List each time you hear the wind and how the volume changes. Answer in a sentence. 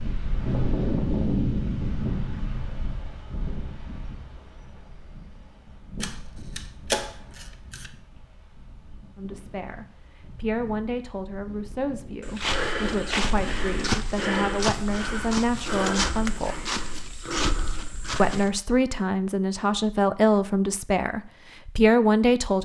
You can hear the wind from 0.0 to 12.2 s, getting quieter.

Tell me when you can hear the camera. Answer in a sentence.
The camera can be heard from 6.0 to 7.9 s and from 13.2 to 14.0 s.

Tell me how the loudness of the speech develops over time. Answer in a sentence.
The loudness of the speech goes up.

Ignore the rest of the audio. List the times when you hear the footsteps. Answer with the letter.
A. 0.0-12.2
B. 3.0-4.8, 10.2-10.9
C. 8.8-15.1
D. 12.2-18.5
D.